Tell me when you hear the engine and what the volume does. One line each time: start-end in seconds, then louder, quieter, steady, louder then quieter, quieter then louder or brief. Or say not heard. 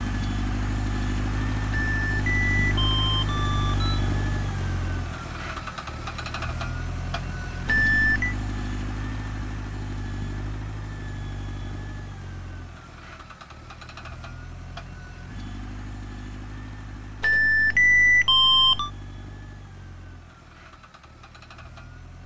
0.0-22.2 quieter.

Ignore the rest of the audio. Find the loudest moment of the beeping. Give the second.
18 s.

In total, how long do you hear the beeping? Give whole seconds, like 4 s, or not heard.
5 s.